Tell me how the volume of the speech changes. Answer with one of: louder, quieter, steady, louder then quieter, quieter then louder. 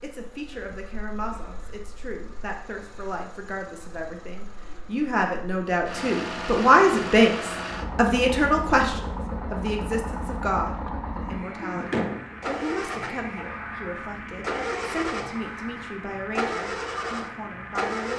louder then quieter.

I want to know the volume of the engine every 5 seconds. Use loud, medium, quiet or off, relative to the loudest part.
quiet, loud, loud, loud.